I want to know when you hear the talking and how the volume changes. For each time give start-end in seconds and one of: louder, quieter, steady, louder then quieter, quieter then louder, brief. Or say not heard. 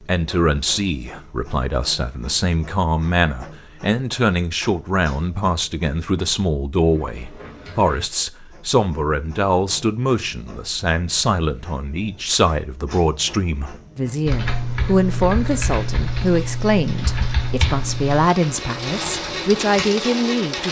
0.0-20.6 steady.